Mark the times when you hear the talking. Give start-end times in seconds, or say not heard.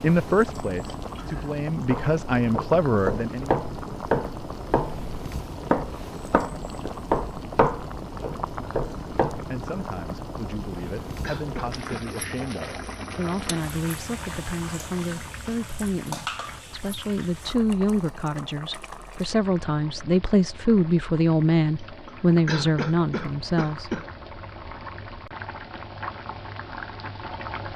0.0-3.5, 9.5-24.0.